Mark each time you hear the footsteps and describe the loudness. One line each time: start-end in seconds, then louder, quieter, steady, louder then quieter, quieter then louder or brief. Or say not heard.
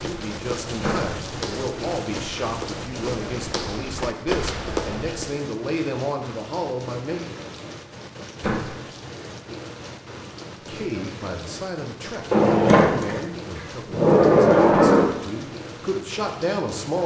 0.0-5.3 louder.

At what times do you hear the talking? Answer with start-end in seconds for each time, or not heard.
0.0-7.3, 10.7-17.0.